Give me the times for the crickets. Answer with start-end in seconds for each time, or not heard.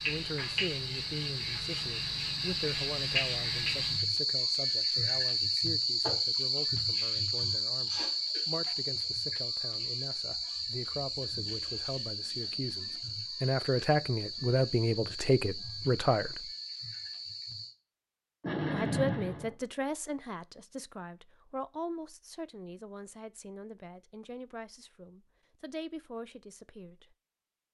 0.0-17.8.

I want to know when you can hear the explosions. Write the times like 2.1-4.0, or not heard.
18.4-19.6.